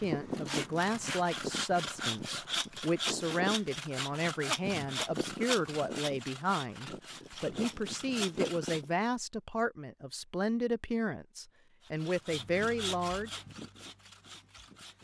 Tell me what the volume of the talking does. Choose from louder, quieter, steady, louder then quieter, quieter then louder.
steady.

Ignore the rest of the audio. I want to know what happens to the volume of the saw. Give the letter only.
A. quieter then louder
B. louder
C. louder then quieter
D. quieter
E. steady
D.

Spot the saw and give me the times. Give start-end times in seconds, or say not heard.
0.0-8.9, 11.8-15.0.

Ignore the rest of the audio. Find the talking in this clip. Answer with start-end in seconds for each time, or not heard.
0.0-13.3.